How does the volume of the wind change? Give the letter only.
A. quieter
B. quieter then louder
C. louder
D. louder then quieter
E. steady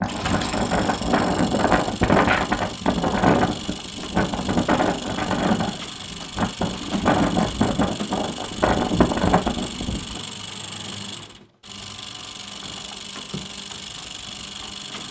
E.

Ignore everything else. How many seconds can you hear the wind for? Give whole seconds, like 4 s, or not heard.
10 s.